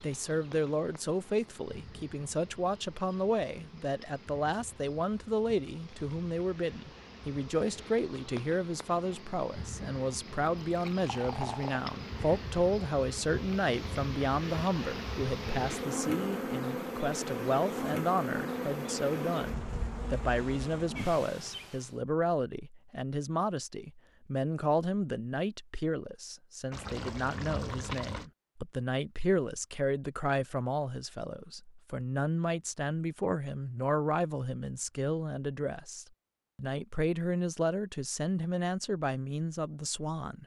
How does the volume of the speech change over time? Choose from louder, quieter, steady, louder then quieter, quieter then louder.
steady.